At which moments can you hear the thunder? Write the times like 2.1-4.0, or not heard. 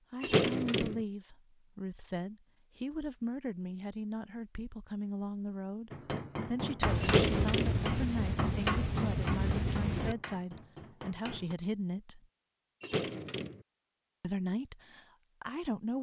6.8-10.2.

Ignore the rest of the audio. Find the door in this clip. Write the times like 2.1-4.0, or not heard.
0.2-1.0, 7.0-7.8, 12.8-13.6.